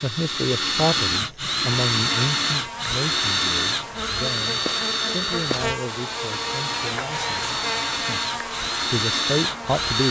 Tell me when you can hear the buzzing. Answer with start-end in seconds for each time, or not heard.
1.7-10.0.